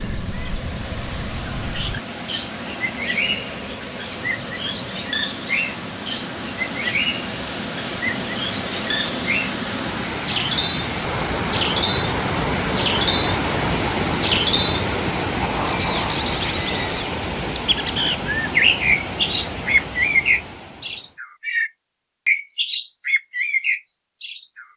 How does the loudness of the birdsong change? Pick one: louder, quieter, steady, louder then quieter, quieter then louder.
louder.